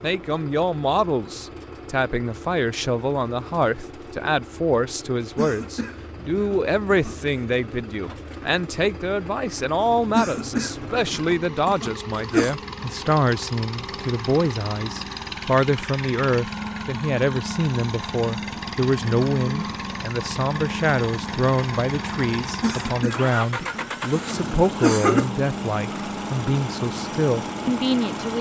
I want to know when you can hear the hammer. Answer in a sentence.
The hammer can't be heard in this clip.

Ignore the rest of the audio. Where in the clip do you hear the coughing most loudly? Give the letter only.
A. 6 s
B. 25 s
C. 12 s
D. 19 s
B.